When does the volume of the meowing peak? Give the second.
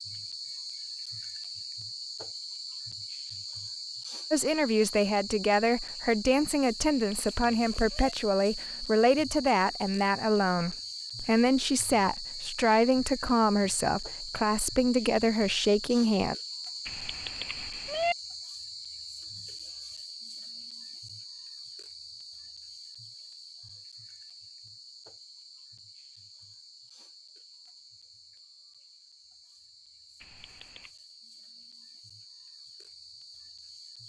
18 s.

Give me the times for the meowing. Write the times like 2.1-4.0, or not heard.
6.9-8.2, 16.9-18.1, 30.2-30.9.